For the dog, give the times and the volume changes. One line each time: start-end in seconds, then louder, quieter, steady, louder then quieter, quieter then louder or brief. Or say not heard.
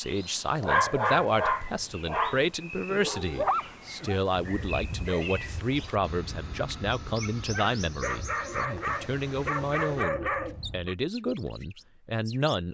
0.6-10.9 quieter then louder.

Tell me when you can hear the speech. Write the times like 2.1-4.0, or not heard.
0.0-12.6.